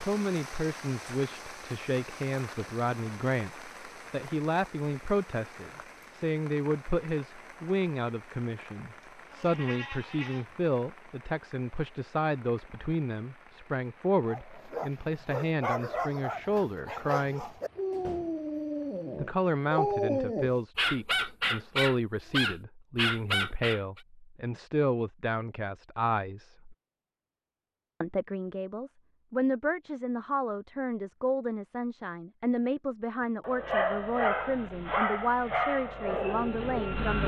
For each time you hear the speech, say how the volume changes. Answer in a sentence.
The speech can be heard from 0.0 to 17.5 s, at a steady volume; from 19.1 to 26.8 s, at a steady volume; and from 28.0 to 37.2 s, at a steady volume.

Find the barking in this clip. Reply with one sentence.
The barking can be heard from 14.2 to 24.0 s and from 33.4 to 37.2 s.